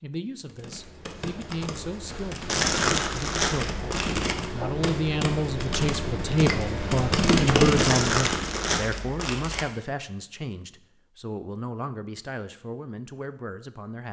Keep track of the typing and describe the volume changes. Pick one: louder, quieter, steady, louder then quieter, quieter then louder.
louder.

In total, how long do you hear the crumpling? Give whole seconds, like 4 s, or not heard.
4 s.